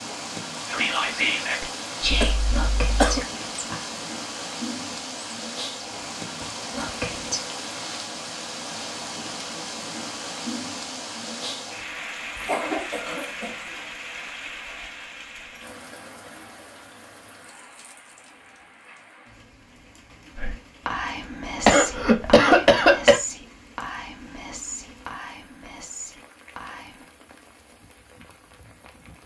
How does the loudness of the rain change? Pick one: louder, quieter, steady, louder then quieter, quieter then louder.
quieter.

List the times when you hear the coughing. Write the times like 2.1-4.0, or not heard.
2.1-3.2, 12.3-13.7, 21.6-23.2.